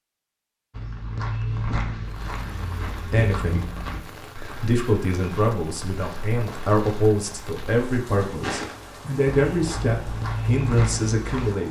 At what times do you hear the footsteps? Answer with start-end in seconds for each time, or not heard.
0.7-11.6.